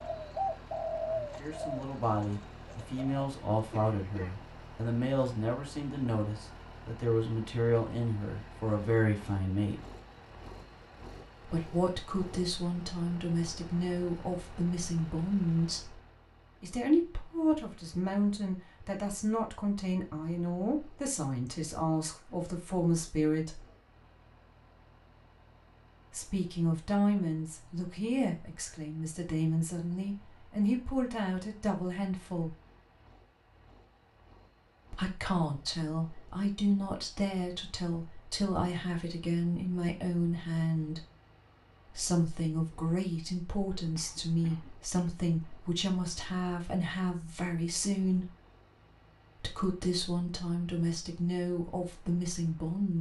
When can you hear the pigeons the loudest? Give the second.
1 s.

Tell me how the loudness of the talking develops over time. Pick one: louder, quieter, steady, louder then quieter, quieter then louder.
steady.